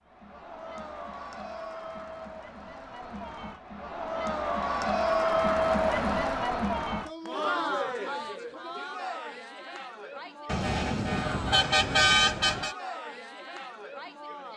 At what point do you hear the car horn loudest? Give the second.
12 s.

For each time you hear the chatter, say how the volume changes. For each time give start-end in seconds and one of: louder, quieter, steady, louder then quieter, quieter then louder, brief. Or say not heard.
0.1-14.5 louder then quieter.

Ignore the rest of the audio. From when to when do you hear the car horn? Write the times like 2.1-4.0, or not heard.
10.4-12.8.